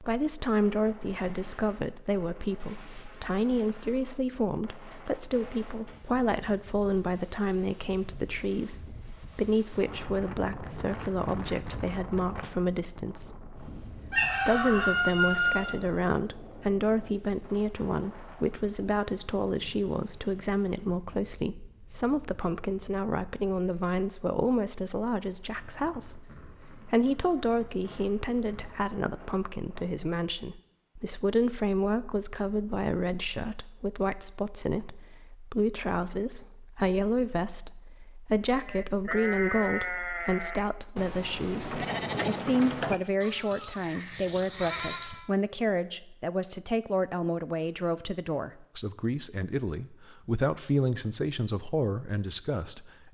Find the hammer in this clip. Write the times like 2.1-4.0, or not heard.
not heard.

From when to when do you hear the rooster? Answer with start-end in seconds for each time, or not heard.
14.1-15.7.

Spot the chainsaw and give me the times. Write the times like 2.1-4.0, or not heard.
not heard.